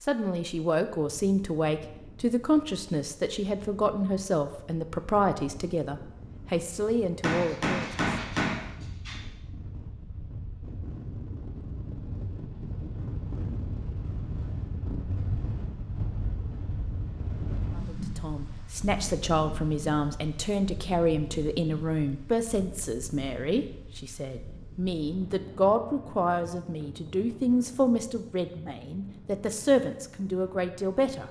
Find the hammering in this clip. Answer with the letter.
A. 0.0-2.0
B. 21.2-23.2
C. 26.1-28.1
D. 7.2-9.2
D.